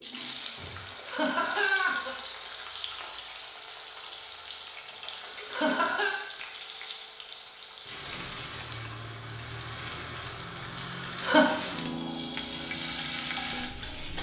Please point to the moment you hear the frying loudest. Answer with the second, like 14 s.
13 s.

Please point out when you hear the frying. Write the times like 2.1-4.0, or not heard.
0.0-14.1.